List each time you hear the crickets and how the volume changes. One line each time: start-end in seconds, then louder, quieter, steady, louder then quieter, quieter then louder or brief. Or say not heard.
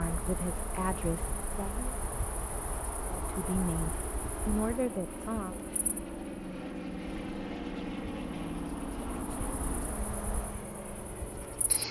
0.0-11.8 quieter then louder.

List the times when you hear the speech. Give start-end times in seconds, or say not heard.
0.0-1.9, 3.0-5.7.